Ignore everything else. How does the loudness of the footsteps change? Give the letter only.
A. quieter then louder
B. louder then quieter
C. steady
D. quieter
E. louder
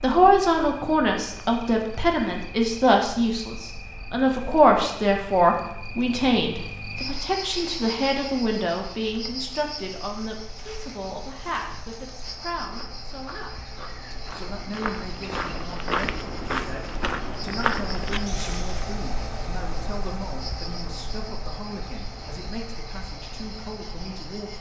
E.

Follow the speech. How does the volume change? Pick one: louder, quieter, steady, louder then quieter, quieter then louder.
quieter.